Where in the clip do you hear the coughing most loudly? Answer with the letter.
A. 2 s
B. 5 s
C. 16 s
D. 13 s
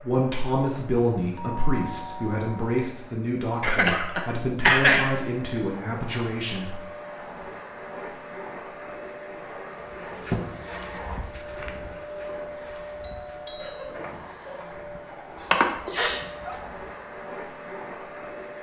B.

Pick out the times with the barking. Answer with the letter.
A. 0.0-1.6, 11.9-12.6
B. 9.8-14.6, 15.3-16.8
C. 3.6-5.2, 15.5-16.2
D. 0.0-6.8
B.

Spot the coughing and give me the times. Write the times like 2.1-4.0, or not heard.
3.6-5.2, 15.5-16.2.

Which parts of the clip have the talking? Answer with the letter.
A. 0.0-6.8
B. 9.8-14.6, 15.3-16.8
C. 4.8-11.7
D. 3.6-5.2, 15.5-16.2
A.